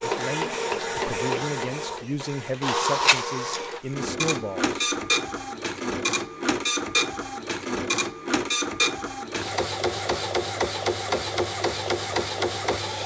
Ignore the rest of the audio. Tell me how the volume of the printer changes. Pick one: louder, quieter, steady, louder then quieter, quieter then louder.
steady.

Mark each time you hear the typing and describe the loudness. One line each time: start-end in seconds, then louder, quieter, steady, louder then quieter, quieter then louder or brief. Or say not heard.
not heard.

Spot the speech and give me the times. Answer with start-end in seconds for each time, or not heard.
0.0-4.8.